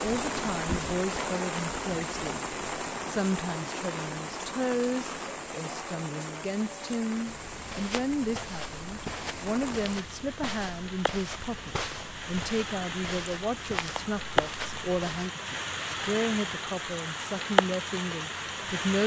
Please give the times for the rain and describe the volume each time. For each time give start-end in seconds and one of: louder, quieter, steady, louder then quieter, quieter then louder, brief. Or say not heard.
0.0-19.0 quieter then louder.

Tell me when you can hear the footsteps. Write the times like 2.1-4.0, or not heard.
7.2-15.3.